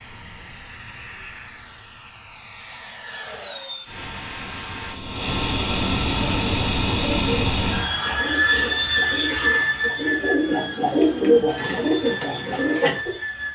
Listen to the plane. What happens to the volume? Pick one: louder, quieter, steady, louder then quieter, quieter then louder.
louder then quieter.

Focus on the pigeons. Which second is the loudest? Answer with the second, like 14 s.
11 s.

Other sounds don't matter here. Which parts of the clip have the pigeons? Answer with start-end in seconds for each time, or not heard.
6.4-13.2.